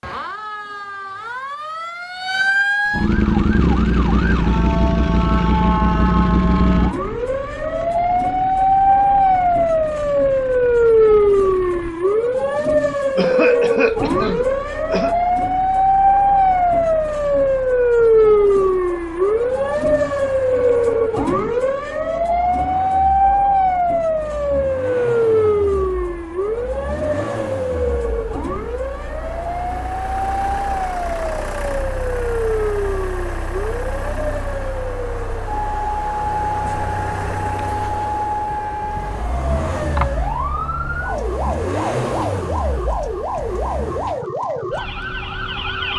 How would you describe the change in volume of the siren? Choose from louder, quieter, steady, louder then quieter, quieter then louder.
quieter.